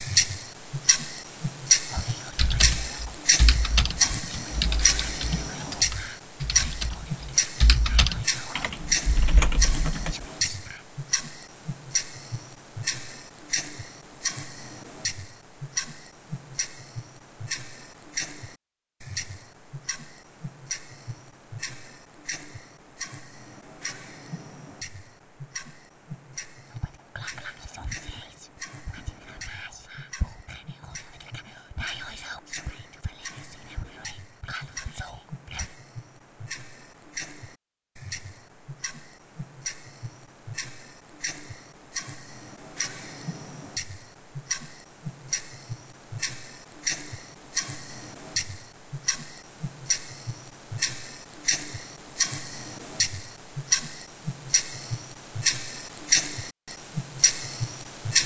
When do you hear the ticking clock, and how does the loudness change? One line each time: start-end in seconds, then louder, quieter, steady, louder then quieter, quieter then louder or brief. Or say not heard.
0.0-58.2 quieter then louder.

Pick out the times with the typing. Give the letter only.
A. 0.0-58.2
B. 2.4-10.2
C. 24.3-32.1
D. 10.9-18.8
B.